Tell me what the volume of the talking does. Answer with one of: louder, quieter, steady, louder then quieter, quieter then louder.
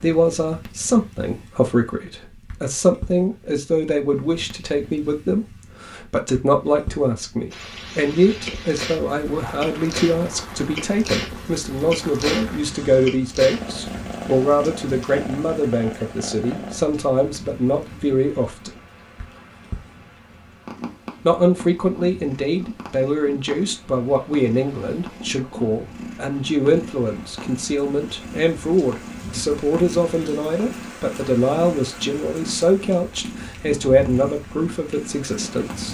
steady.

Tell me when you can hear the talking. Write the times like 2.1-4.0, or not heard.
0.0-18.8, 21.2-35.8.